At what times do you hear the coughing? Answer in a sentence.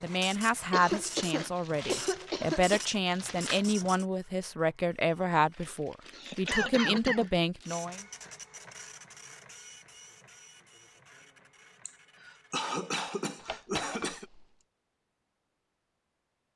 The coughing can be heard from 0.7 to 2.8 s, from 6.1 to 7.3 s and from 11.8 to 14.2 s.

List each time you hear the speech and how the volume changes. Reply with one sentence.
You can hear the speech from 0.0 to 8.0 s, at a steady volume.